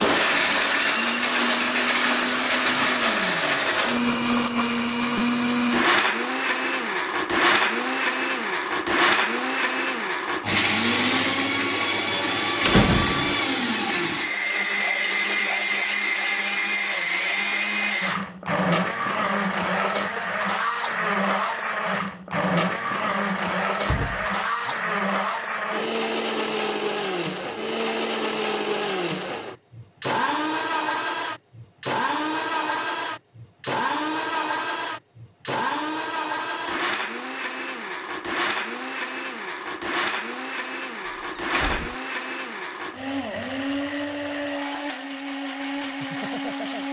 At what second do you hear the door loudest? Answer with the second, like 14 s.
13 s.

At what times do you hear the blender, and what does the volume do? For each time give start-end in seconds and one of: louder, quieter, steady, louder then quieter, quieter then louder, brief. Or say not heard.
0.0-46.8 quieter.